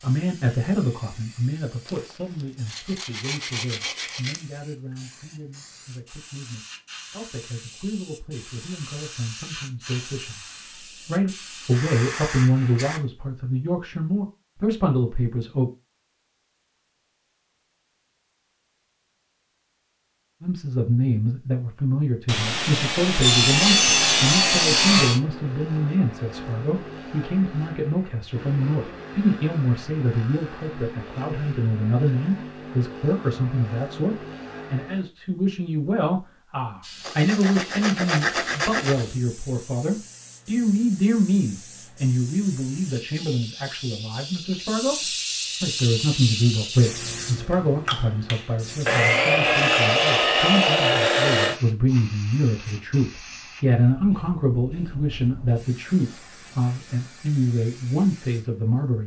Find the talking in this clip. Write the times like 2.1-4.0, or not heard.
0.0-10.4, 11.1-15.7, 20.4-59.0.